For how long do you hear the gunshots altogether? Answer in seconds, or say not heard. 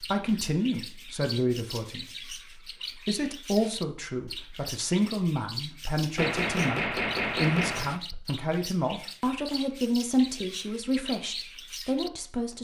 2 s.